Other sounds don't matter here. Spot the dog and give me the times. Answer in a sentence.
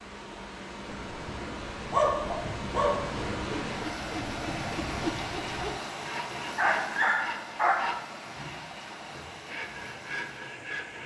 The dog can be heard from 1.9 to 3.5 s and from 6.5 to 8.0 s.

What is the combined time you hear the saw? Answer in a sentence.
You can hear the saw for 7 seconds altogether.